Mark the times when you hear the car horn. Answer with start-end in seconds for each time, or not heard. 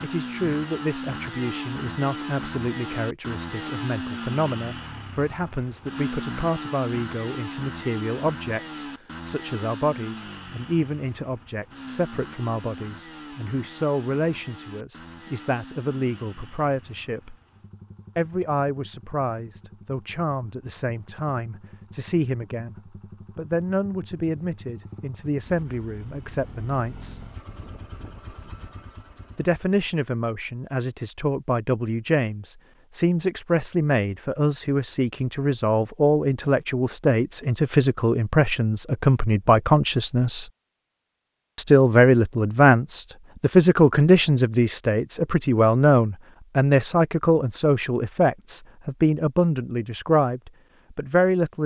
not heard.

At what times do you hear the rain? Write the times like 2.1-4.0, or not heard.
not heard.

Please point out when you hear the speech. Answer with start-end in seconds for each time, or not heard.
0.0-17.4, 18.1-22.8, 23.4-27.2, 29.4-40.5, 41.5-51.6.